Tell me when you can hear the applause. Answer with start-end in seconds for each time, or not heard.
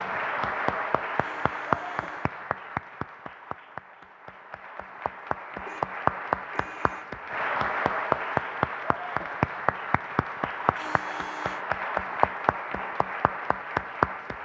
0.0-14.4.